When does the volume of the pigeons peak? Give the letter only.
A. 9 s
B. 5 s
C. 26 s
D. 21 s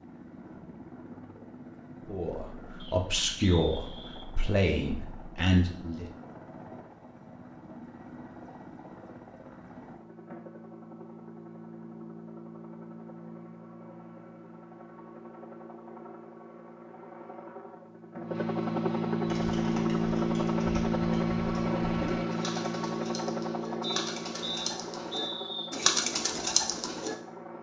C.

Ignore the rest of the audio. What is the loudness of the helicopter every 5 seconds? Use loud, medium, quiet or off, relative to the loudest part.
quiet, quiet, quiet, loud, loud, quiet.